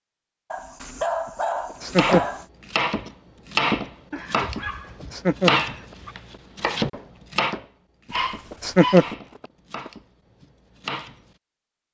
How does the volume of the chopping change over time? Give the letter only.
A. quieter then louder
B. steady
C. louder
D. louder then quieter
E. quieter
E.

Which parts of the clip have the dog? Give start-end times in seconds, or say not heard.
0.5-2.5, 4.1-6.2, 8.1-9.2.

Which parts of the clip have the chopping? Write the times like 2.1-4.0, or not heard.
1.9-11.3.